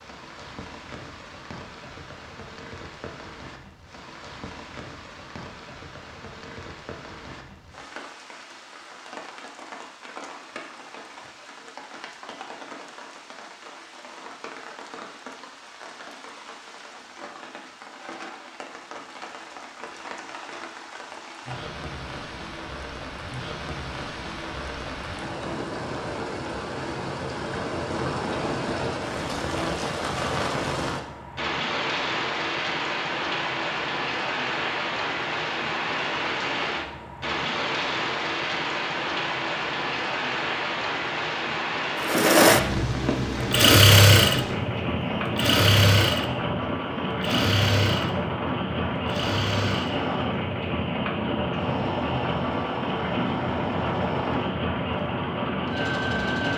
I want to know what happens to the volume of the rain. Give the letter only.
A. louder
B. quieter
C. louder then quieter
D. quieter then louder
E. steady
A.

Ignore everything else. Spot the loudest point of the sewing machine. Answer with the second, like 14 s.
44 s.